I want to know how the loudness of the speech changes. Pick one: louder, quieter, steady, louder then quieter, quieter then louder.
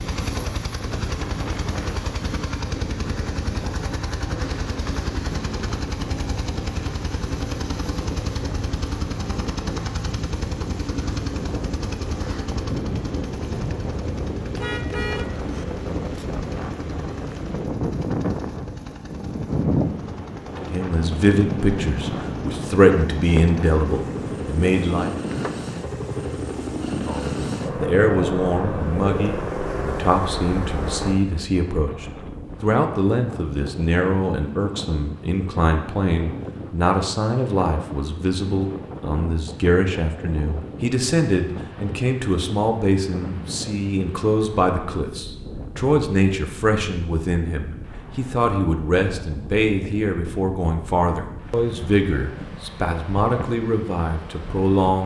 steady.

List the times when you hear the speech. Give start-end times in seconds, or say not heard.
20.6-25.1, 27.1-55.0.